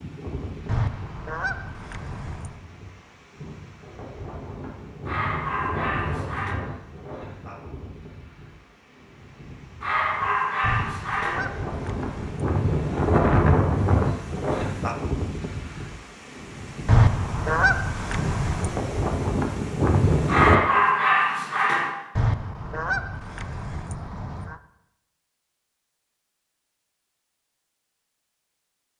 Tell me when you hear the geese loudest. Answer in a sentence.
The loudest moment of the geese is at 17 seconds.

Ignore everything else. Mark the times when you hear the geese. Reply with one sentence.
The geese can be heard from 0.7 to 2.6 s, from 10.6 to 12.5 s, from 16.9 to 18.8 s and from 22.1 to 24.6 s.